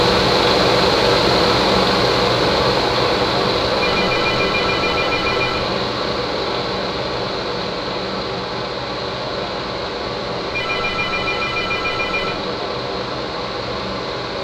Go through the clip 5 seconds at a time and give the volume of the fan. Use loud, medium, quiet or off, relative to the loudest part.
loud, medium, medium.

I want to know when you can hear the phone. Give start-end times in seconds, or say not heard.
3.8-5.7, 10.5-12.4.